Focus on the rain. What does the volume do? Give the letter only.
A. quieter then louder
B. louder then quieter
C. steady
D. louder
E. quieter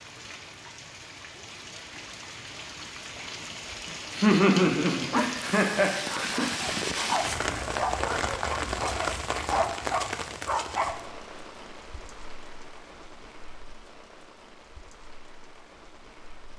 B.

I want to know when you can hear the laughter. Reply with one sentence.
You can hear the laughter from 3.9 to 6.5 s.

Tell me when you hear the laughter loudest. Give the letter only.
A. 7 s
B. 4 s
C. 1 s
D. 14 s
B.